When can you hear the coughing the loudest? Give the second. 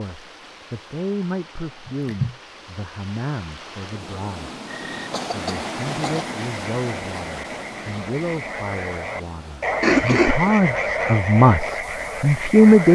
10 s.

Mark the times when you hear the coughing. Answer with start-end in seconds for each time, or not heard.
1.9-2.4, 5.1-6.3, 9.8-10.5.